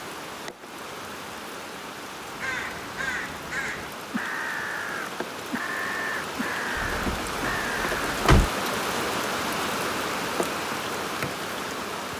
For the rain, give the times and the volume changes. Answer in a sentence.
The rain can be heard from 0.0 to 12.1 s, getting louder.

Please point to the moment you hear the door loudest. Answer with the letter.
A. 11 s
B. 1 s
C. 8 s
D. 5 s
C.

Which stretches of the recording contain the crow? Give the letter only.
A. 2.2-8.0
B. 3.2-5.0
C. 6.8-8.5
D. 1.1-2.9
A.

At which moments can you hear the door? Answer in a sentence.
You can hear the door from 6.8 to 8.5 s.